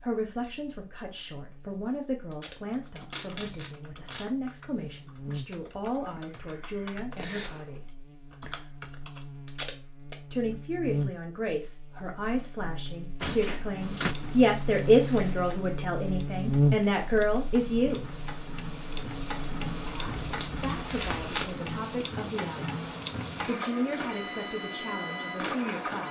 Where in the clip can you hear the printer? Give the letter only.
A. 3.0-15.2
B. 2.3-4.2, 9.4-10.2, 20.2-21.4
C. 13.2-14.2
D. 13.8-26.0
D.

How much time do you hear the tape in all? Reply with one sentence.
The tape can be heard for 4 seconds in total.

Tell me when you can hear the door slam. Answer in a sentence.
You can hear the door slam from 13.2 to 14.2 s.